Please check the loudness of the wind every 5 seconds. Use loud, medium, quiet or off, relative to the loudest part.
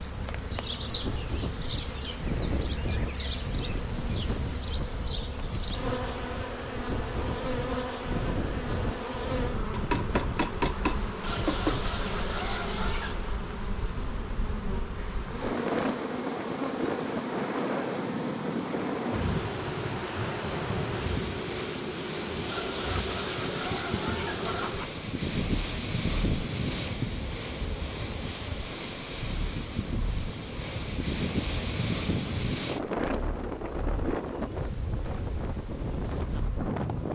medium, medium, medium, loud, loud, loud, loud, loud.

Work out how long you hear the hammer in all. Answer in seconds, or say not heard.
2 s.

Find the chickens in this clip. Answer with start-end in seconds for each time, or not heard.
11.2-13.2, 22.4-24.9.